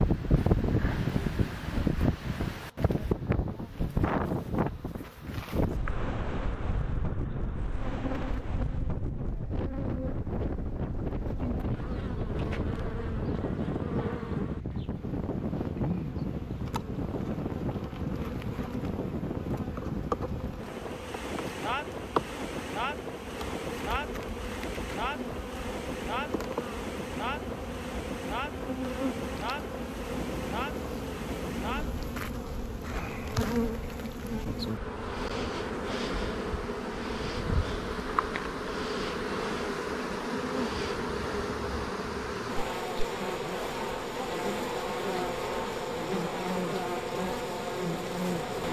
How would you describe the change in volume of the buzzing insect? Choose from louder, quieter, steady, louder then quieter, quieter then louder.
louder.